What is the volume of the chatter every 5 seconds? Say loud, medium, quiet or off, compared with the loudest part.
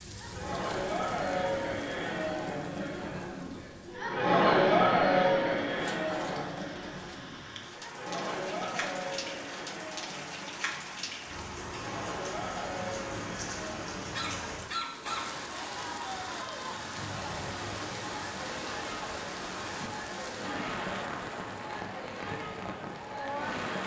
loud, loud, quiet, quiet, quiet.